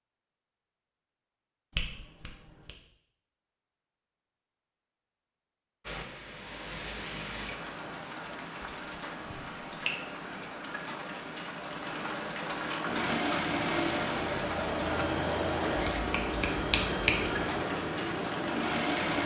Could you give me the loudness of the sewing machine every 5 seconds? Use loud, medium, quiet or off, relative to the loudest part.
off, off, loud, loud.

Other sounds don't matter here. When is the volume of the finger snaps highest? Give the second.
17 s.